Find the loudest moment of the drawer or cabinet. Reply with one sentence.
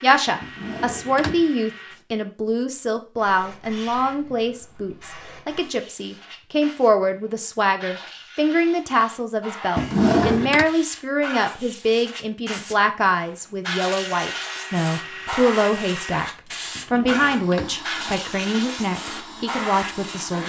The volume of the drawer or cabinet peaks at 10 seconds.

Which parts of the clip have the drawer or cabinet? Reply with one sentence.
The drawer or cabinet can be heard from 0.4 to 1.4 s, from 9.8 to 10.7 s and from 16.8 to 17.8 s.